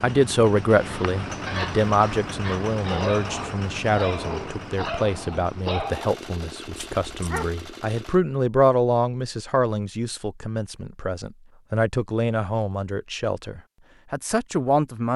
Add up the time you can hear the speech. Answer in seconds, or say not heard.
15 s.